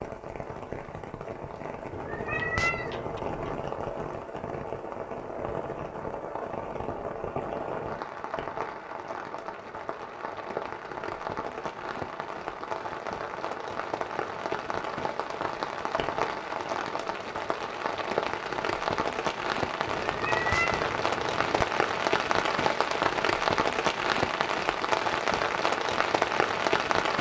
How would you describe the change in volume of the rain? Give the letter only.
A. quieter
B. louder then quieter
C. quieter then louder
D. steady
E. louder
E.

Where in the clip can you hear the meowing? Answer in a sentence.
You can hear the meowing from 1.9 to 3.6 s and from 19.9 to 21.6 s.